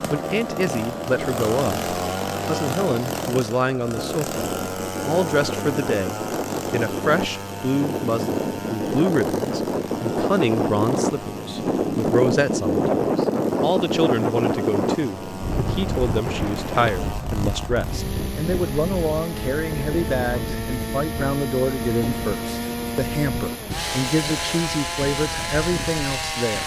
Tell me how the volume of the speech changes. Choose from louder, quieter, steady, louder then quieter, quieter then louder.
steady.